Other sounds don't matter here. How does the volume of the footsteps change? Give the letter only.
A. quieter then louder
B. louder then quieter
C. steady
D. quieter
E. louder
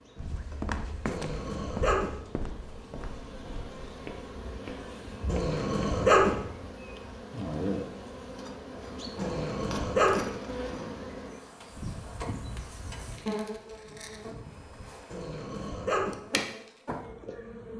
D.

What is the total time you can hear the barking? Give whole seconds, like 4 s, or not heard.
4 s.